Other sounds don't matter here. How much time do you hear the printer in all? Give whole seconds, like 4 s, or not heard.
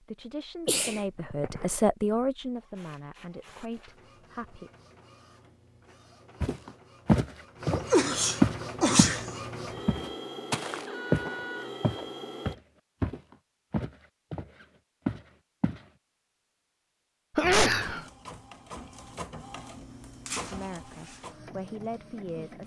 15 s.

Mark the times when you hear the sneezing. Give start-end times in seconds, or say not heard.
0.7-1.6, 7.7-9.3, 17.4-18.1.